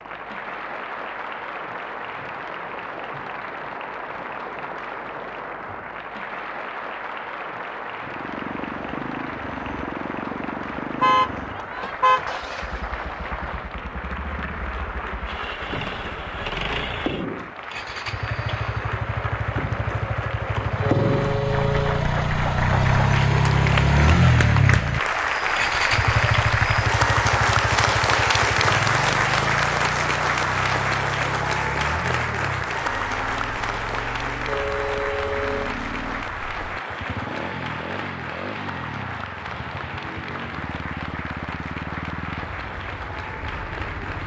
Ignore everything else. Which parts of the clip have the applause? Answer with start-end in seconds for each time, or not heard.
0.0-44.2.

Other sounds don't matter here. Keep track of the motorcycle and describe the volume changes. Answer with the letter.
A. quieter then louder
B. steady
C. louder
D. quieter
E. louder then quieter
E.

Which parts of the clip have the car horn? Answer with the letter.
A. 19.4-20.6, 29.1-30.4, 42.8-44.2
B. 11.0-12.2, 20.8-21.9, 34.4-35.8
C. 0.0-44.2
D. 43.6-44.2
B.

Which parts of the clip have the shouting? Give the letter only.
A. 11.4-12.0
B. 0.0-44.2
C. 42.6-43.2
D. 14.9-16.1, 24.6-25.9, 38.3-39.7
A.